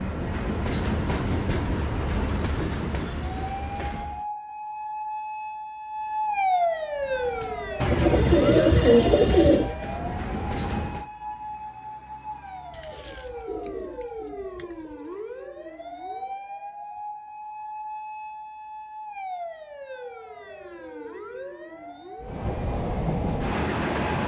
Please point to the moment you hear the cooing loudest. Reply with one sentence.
The loudest moment of the cooing is at 9 seconds.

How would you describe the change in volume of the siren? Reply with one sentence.
The loudness of the siren goes down.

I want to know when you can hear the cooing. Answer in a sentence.
You can hear the cooing from 7.8 to 9.8 s and from 12.7 to 15.2 s.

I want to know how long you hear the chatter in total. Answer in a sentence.
You can't hear the chatter here.